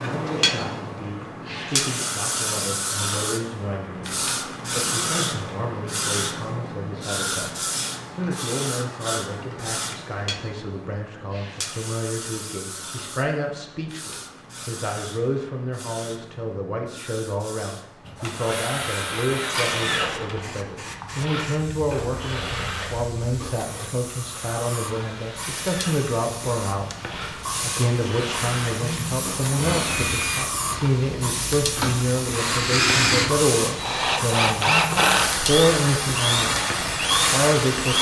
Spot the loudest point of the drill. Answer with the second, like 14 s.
35 s.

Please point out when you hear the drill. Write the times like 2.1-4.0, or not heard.
18.1-37.9.